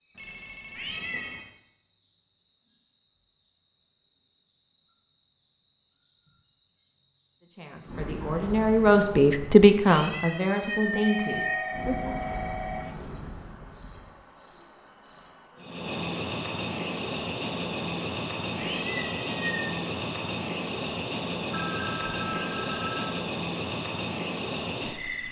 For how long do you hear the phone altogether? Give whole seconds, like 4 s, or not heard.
5 s.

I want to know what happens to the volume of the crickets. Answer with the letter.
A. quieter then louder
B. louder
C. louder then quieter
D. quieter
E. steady
B.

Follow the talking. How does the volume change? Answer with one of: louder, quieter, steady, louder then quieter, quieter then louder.
louder then quieter.